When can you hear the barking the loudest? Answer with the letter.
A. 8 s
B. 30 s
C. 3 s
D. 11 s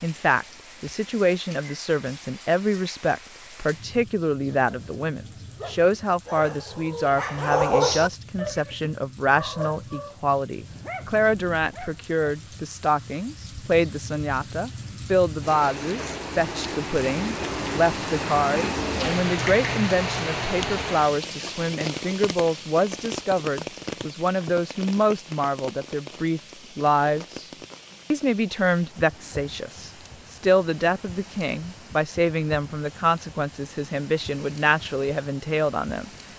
A.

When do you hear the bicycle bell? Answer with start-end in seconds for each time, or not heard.
not heard.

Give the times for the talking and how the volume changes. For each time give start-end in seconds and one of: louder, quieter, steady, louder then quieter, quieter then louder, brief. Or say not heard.
0.0-27.5 steady
28.1-36.1 steady.